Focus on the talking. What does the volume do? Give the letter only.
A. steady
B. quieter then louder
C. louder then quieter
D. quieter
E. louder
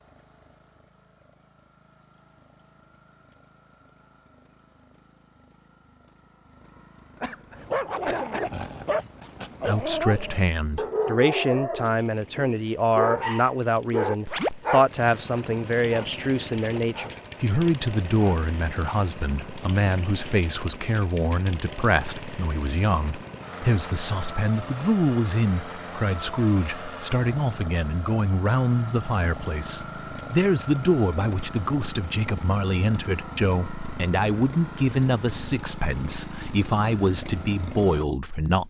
A.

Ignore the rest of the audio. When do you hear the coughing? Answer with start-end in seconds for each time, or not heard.
7.2-8.5.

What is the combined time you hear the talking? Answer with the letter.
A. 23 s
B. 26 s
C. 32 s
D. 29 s
D.